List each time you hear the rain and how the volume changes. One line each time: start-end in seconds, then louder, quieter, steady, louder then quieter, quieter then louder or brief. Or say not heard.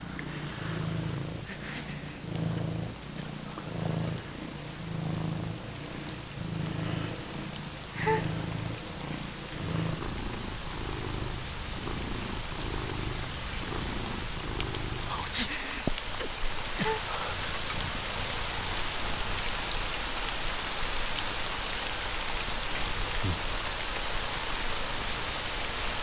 0.0-25.9 louder.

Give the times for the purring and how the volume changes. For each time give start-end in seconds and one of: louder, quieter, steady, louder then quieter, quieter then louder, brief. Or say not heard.
0.0-25.9 quieter.